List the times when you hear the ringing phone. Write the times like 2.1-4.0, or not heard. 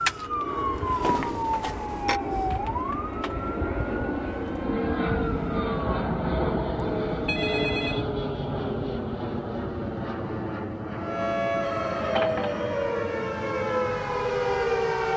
1.0-2.2, 6.8-8.1, 11.6-12.7.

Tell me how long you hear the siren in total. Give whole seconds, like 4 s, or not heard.
11 s.